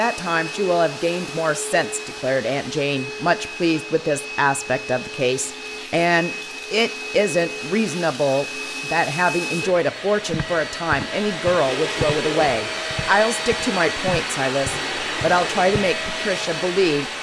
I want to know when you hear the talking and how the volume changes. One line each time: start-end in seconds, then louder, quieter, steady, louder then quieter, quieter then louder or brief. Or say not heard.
0.0-17.1 steady.